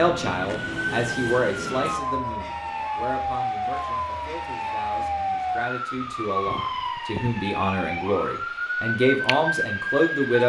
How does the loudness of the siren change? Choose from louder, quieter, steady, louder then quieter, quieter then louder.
steady.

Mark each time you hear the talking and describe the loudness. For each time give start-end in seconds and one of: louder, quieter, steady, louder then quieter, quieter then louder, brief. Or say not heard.
0.0-10.4 quieter then louder.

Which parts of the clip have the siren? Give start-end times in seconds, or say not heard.
0.0-10.4.